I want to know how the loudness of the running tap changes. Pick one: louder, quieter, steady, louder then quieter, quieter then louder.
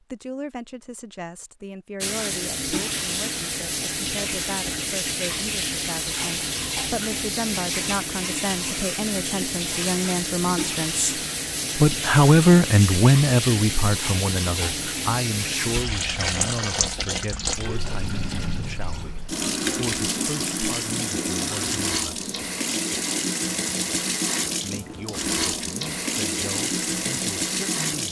steady.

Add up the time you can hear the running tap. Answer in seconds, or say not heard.
26 s.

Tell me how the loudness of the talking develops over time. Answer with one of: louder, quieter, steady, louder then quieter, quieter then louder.
louder then quieter.